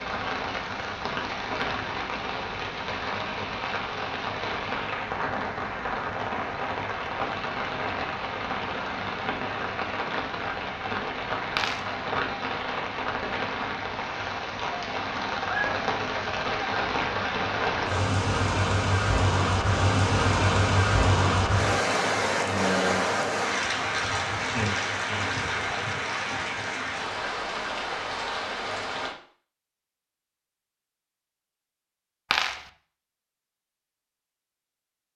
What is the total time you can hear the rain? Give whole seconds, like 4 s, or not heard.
29 s.